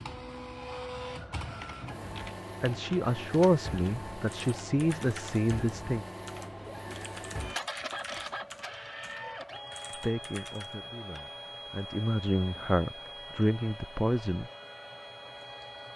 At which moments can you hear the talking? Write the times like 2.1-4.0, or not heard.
2.6-6.0, 10.0-14.5.